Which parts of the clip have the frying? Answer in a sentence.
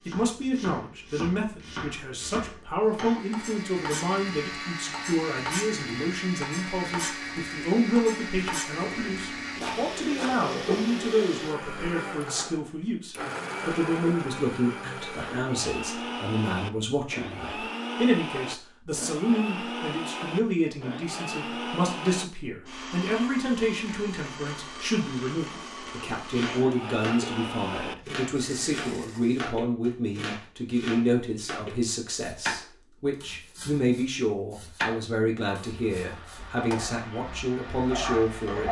You can hear the frying from 8.8 to 11.1 s and from 35.5 to 38.6 s.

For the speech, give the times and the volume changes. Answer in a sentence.
The speech can be heard from 0.1 to 38.6 s, at a steady volume.